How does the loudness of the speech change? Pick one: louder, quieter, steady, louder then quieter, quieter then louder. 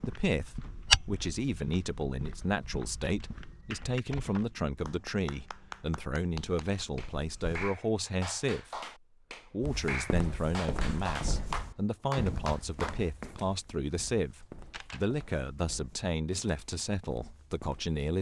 steady.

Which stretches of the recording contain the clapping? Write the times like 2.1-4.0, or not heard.
3.7-12.9.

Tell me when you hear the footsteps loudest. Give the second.
1 s.